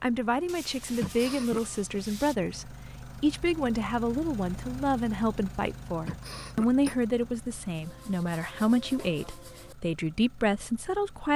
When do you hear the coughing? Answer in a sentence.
The coughing can be heard from 1.0 to 1.6 s and from 6.0 to 7.0 s.